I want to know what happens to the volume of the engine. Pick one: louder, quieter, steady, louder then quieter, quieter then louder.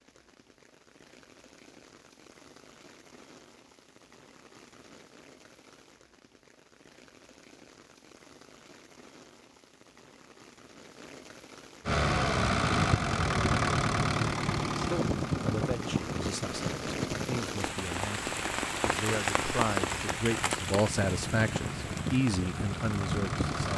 quieter then louder.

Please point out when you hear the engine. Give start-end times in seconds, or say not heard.
11.8-23.7.